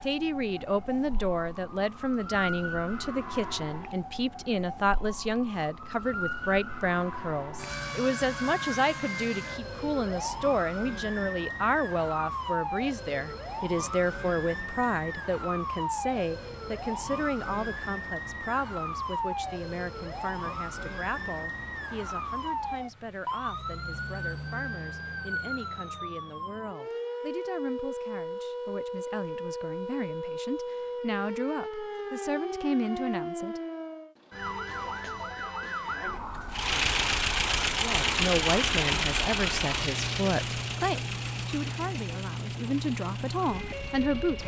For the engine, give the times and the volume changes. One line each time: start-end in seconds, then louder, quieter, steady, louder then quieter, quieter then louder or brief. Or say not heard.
36.5-44.4 quieter.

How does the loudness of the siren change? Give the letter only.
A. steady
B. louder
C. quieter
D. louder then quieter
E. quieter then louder
A.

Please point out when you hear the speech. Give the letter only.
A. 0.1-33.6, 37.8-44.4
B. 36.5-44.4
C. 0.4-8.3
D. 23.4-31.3
A.